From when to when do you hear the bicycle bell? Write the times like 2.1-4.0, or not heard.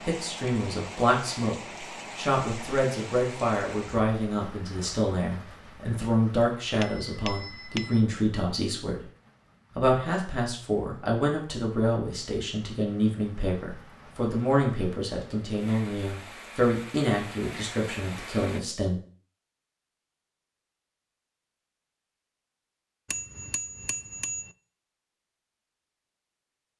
6.8-8.1, 23.1-24.6.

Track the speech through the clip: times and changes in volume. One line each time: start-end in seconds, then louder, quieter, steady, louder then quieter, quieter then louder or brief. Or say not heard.
0.0-9.1 steady
9.8-19.0 steady.